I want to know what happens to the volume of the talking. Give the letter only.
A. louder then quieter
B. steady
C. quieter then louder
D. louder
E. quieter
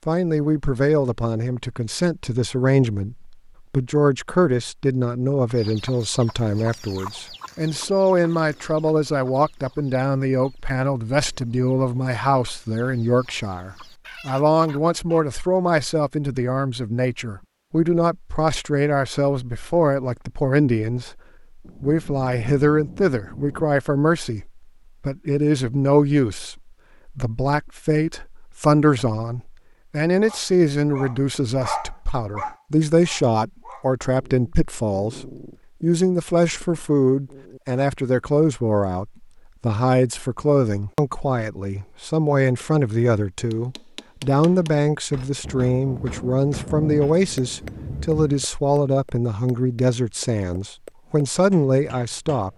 B.